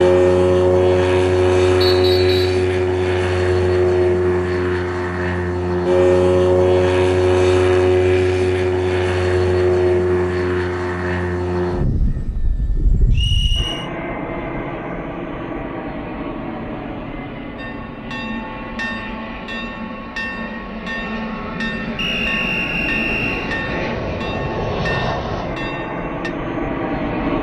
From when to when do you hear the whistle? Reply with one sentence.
You can hear the whistle from 1.8 to 2.6 s, from 13.1 to 13.9 s and from 21.9 to 23.6 s.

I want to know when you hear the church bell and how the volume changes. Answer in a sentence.
You can hear the church bell from 17.6 to 26.3 s, at a steady volume.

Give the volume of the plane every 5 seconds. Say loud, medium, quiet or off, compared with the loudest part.
loud, loud, medium, quiet, medium, medium.